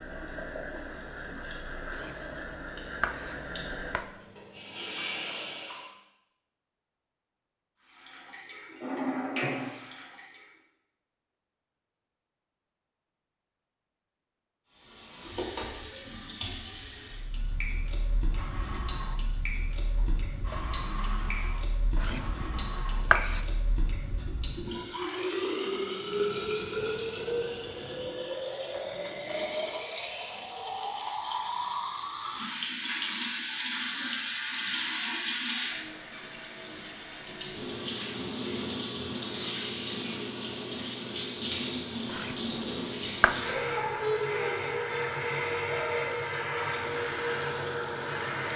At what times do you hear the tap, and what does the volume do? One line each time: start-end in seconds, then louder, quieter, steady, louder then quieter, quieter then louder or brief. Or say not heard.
0.0-6.0 steady
7.8-10.5 brief
14.8-48.5 louder.